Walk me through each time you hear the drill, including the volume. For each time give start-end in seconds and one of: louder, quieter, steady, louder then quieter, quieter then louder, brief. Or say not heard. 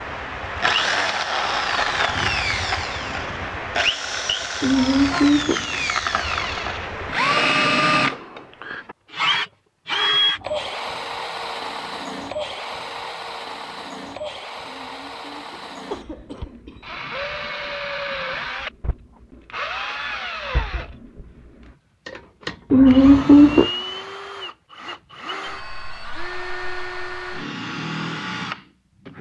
0.0-29.1 quieter.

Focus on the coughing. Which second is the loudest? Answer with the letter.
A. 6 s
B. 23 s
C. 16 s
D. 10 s
B.